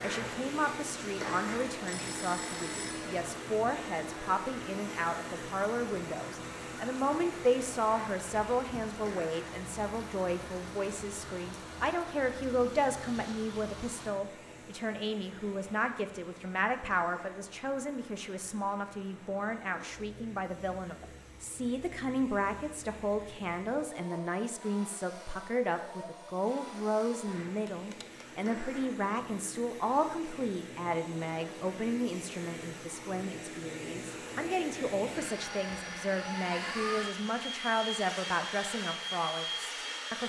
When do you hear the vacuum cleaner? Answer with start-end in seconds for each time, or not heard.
0.0-40.2.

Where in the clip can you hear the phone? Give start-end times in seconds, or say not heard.
1.9-3.2, 27.6-28.2.